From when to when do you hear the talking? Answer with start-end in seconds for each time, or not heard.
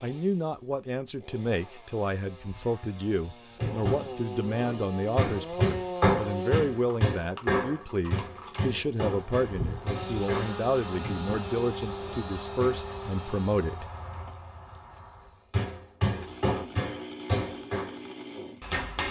0.0-13.8.